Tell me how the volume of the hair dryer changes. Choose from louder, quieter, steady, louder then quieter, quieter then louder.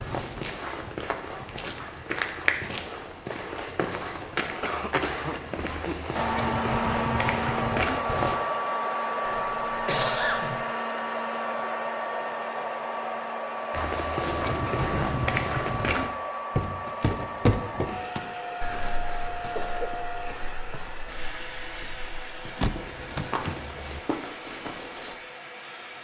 quieter.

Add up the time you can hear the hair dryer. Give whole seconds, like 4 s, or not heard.
20 s.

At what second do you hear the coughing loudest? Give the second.
10 s.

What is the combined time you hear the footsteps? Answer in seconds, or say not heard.
20 s.